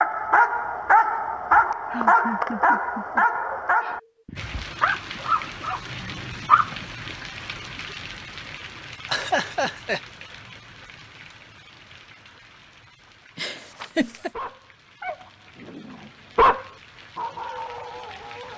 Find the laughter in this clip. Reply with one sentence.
You can hear the laughter from 1.5 to 4.0 s, from 9.1 to 10.0 s and from 13.3 to 14.3 s.